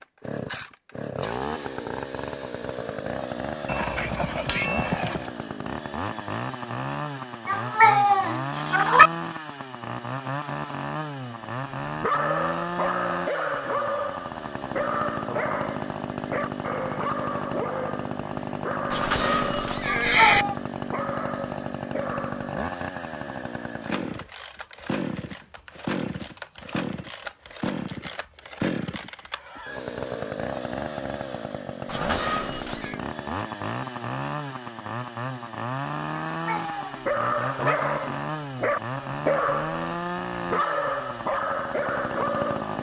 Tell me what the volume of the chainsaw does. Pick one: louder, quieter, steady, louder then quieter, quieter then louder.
steady.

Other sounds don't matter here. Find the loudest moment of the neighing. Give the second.
20 s.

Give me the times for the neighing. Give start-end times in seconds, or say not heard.
3.6-5.3, 18.9-20.4, 31.9-33.0.